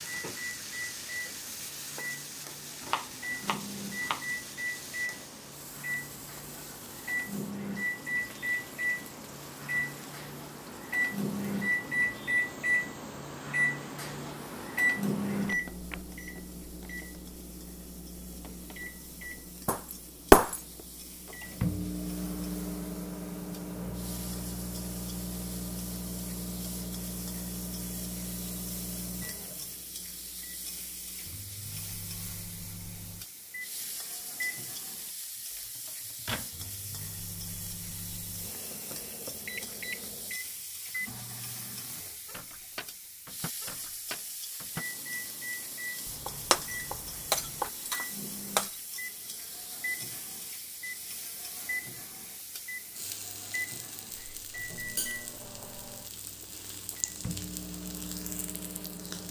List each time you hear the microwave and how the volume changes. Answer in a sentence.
You can hear the microwave from 0.0 to 59.2 s, getting quieter.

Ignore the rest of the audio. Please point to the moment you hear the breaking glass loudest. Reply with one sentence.
The loudest moment of the breaking glass is at 20 seconds.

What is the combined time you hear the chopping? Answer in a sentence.
The chopping can be heard for 3 seconds in total.